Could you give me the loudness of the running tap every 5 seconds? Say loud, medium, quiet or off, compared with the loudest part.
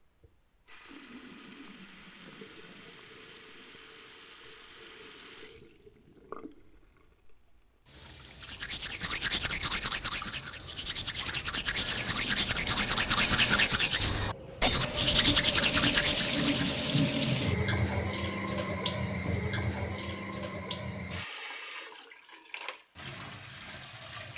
quiet, quiet, medium, loud, medium.